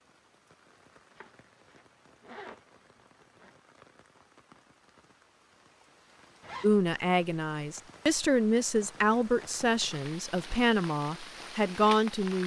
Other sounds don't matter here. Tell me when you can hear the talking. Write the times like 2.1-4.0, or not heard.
6.6-12.4.